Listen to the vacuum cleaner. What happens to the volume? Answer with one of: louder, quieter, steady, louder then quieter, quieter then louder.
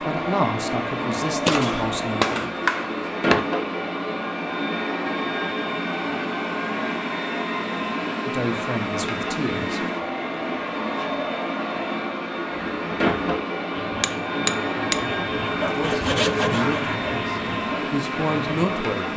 steady.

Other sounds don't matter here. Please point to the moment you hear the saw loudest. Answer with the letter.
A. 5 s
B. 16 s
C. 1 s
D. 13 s
B.